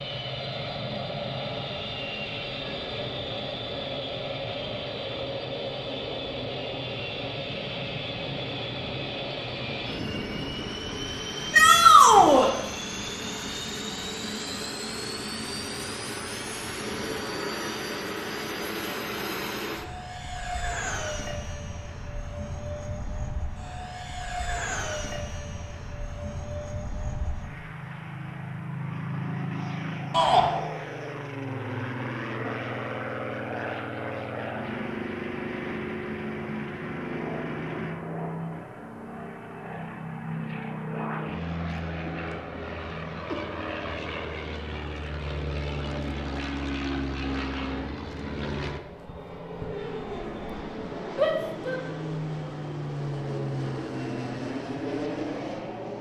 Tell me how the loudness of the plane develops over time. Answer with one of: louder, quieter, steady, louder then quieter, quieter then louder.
steady.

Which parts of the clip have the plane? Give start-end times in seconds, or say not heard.
0.0-55.9.